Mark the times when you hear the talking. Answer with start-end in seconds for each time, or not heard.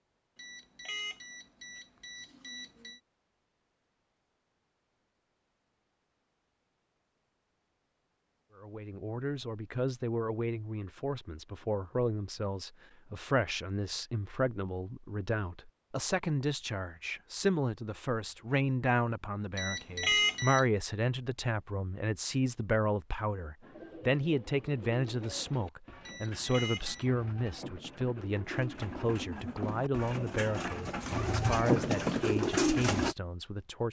8.6-33.8.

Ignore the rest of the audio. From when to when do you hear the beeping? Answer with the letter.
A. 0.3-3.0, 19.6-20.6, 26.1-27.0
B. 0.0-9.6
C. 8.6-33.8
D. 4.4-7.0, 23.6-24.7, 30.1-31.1
A.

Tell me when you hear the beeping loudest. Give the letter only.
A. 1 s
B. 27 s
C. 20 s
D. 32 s
C.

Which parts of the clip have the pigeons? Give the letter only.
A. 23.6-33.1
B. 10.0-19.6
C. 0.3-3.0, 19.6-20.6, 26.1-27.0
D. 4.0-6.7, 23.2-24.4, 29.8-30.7
A.